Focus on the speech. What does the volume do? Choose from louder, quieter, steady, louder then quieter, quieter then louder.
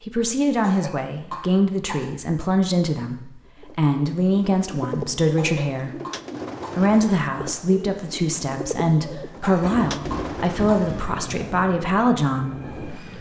steady.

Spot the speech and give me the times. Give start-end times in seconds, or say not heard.
0.1-5.9, 6.8-13.1.